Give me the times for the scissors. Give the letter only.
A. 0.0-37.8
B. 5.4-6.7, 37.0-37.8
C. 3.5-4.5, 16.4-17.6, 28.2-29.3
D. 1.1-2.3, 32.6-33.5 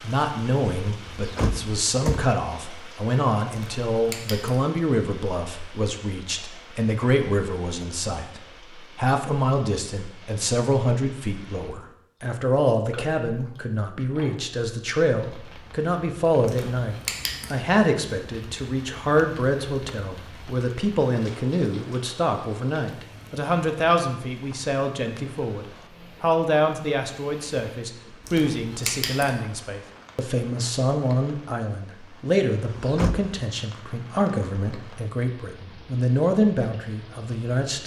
C.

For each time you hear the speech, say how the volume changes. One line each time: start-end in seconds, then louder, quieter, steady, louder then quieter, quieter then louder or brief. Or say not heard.
0.0-37.8 steady.